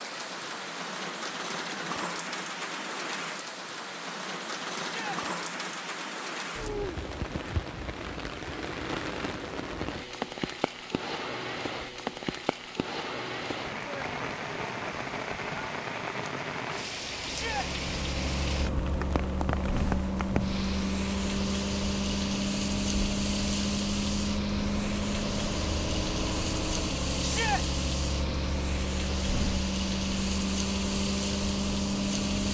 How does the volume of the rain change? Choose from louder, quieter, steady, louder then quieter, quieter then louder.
steady.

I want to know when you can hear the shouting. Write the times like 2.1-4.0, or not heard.
4.8-5.2, 17.2-17.7, 27.2-27.6.